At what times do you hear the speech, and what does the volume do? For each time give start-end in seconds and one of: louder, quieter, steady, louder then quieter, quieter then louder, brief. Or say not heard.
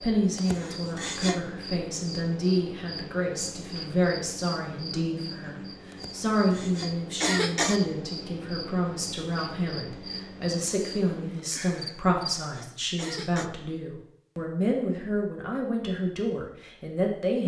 0.0-17.4 steady.